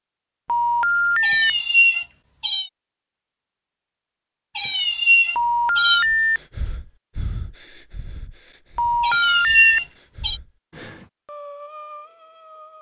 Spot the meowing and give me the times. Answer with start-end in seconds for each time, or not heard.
1.2-2.7, 4.5-6.0, 9.0-10.4.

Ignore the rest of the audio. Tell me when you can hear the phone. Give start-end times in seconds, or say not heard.
0.5-1.5, 5.3-6.4, 8.8-9.8.